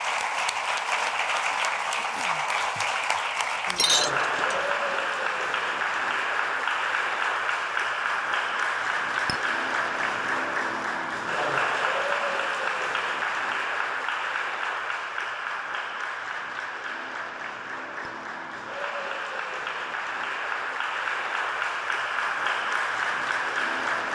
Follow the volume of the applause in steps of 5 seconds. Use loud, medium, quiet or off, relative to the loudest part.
loud, loud, loud, medium, loud.